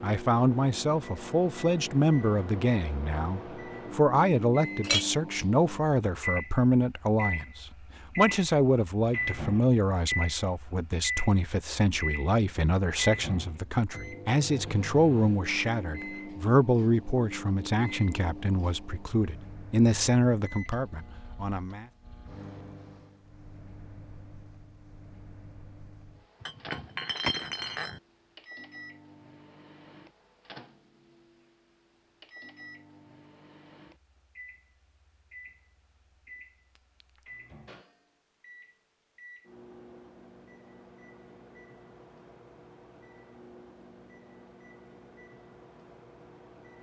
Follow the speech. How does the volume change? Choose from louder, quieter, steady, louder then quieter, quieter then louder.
steady.